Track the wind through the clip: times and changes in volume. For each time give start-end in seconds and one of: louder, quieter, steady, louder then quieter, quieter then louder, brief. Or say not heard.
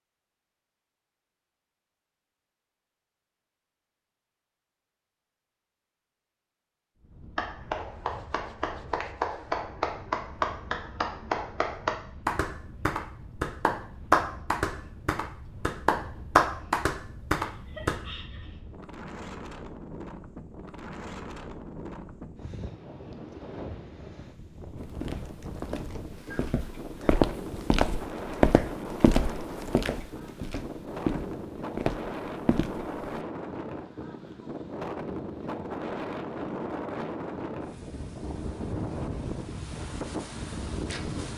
7.0-41.3 louder.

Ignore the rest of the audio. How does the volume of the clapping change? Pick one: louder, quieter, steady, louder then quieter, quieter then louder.
louder.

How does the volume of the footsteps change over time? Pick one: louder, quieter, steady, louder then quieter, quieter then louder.
louder then quieter.